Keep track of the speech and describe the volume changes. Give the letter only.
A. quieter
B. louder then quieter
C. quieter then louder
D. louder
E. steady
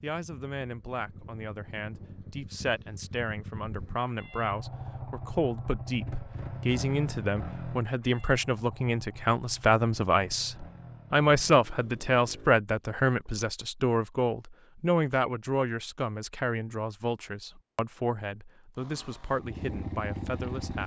B.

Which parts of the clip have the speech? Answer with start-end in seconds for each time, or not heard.
0.0-20.8.